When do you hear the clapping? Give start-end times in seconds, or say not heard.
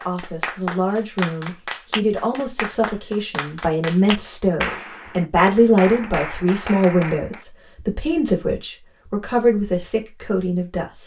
0.0-7.5.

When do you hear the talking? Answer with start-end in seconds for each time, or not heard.
0.1-11.0.